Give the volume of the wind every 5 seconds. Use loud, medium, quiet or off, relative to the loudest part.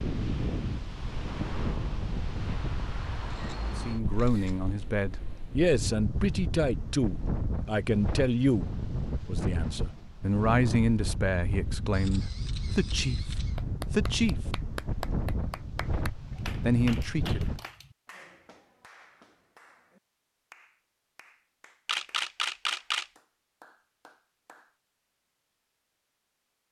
loud, loud, loud, loud, off, off.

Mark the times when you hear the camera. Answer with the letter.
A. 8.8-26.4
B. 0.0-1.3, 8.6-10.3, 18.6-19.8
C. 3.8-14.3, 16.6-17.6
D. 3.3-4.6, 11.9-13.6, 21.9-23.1
D.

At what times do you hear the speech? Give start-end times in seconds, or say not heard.
3.8-14.3, 16.6-17.6.